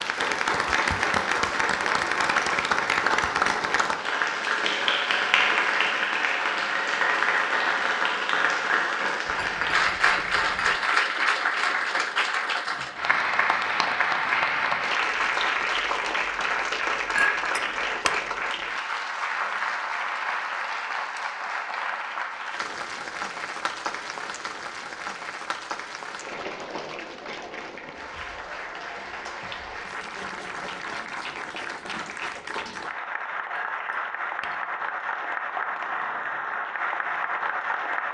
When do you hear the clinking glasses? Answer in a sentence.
You can hear the clinking glasses from 9.2 to 10.8 s, from 17.1 to 18.2 s and from 33.5 to 34.6 s.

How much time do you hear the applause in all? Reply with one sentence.
The applause can be heard for 38 seconds in total.